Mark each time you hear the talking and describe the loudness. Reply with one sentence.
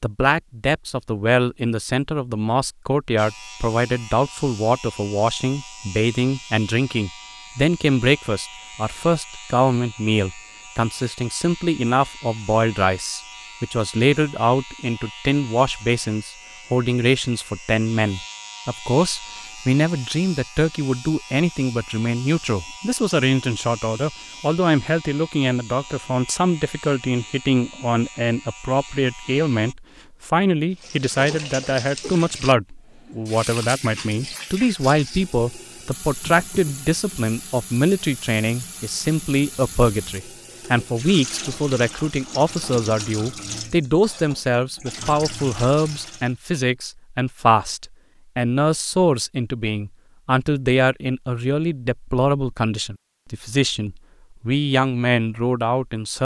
The talking can be heard from 0.0 to 56.1 s, at a steady volume.